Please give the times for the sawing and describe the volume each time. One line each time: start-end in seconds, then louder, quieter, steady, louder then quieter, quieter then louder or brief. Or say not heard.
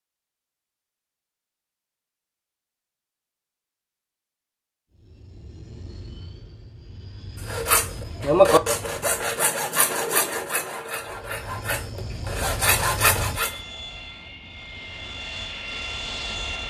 7.5-13.6 quieter then louder.